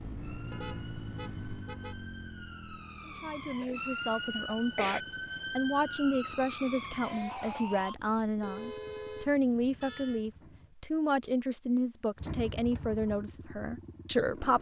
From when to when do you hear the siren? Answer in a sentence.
The siren can be heard from 0.1 to 8.0 s.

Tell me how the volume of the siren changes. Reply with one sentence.
The volume of the siren goes up.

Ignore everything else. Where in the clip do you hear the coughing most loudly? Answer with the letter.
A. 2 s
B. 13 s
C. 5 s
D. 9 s
C.